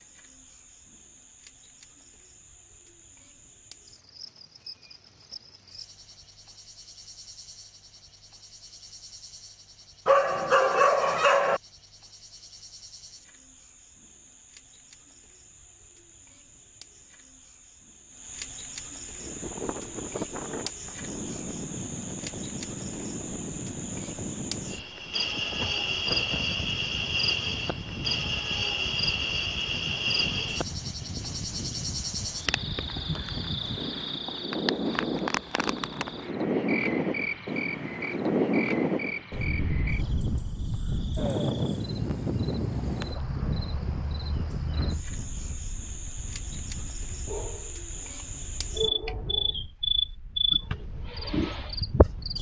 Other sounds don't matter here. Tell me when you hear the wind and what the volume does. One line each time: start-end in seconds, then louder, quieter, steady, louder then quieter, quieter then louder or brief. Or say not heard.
19.1-52.3 louder then quieter.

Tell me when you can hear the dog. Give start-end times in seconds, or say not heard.
10.1-11.6, 47.2-49.5.